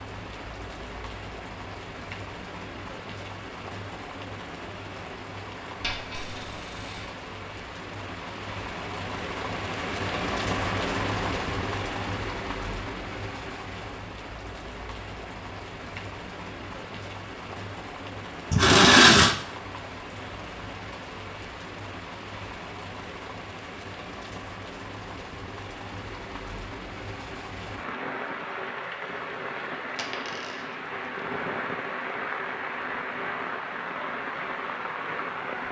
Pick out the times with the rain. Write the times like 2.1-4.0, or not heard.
0.0-35.6.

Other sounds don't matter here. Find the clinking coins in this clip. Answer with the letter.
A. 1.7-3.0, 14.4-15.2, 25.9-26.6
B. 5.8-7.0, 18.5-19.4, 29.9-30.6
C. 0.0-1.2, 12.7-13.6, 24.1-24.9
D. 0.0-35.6
B.